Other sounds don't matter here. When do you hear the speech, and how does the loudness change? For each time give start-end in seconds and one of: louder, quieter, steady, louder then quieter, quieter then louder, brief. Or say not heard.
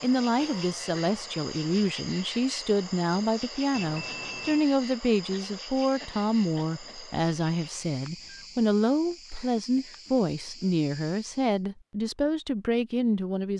0.0-13.5 steady.